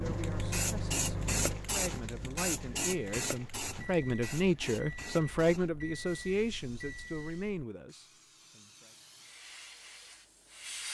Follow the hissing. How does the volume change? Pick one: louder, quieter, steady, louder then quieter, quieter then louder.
quieter then louder.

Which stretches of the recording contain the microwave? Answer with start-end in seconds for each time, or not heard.
0.0-7.7.